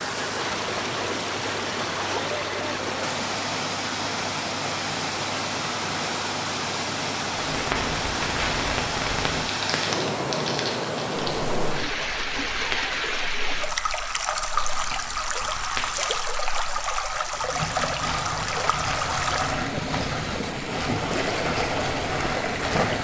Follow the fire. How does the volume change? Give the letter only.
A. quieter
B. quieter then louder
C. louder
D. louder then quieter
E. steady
B.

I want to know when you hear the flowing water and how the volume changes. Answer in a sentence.
You can hear the flowing water from 0.0 to 22.9 s, at a steady volume.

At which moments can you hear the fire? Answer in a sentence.
You can hear the fire from 7.5 to 22.9 s.